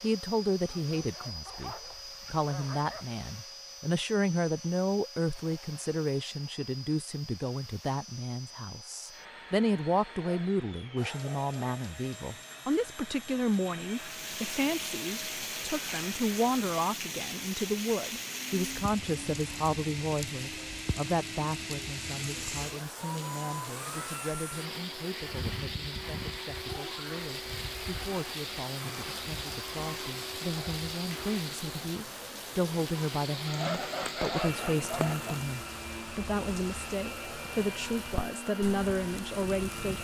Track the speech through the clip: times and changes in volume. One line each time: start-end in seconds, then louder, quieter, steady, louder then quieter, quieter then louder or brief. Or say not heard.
0.0-39.9 quieter then louder.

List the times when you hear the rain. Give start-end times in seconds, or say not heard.
13.9-39.9.